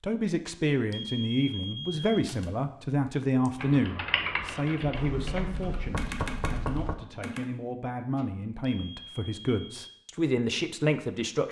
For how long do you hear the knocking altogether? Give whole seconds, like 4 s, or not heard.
2 s.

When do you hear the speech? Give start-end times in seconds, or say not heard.
0.0-11.4.